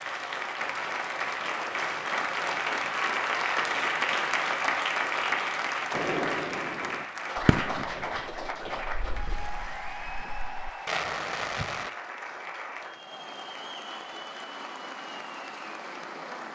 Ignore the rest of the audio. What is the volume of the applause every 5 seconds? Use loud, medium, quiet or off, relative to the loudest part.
loud, loud, medium, medium.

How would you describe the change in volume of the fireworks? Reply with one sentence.
The loudness of the fireworks goes down, then up.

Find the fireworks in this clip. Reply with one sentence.
You can hear the fireworks from 5.9 to 11.9 s.